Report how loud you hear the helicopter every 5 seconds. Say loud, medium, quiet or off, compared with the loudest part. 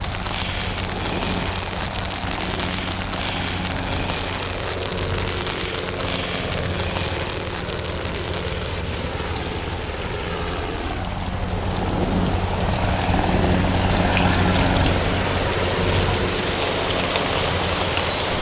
medium, medium, loud, loud.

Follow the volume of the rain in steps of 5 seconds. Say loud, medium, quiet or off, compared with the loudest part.
loud, loud, medium, loud.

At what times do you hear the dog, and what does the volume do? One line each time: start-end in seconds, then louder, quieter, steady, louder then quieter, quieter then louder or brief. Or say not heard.
not heard.